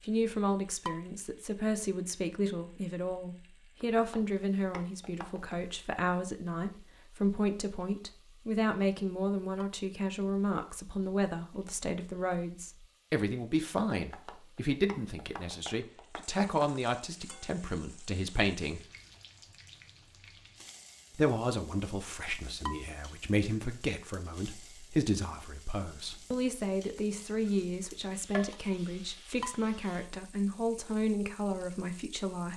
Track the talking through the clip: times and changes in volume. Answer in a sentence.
The talking can be heard from 0.0 to 18.9 s, at a steady volume; and from 21.1 to 32.5 s, at a steady volume.